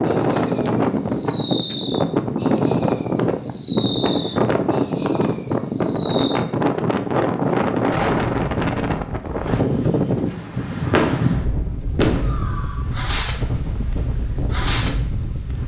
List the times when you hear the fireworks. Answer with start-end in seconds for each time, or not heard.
0.0-6.3, 10.4-13.6, 14.5-15.1.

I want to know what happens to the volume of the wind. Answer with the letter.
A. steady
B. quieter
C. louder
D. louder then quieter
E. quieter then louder
B.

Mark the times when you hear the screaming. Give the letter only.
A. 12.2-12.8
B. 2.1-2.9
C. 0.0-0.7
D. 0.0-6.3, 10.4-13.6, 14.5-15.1
A.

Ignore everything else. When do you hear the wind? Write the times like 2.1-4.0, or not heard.
0.0-15.6.